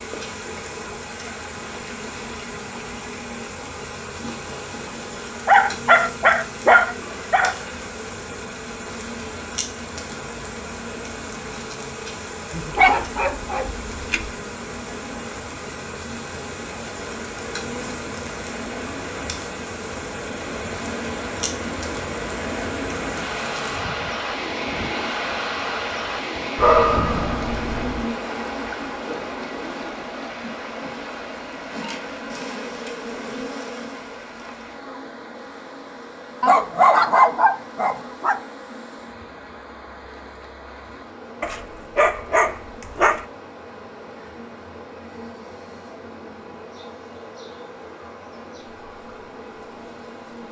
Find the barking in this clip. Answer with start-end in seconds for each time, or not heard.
5.5-7.5, 12.5-14.3, 26.6-28.1, 36.4-38.4, 41.4-43.2.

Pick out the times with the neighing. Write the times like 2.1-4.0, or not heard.
not heard.